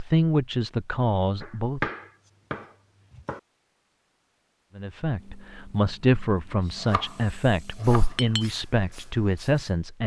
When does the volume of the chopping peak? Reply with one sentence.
The loudest moment of the chopping is at 2 seconds.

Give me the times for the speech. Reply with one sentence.
You can hear the speech from 0.0 to 1.9 s and from 4.8 to 10.0 s.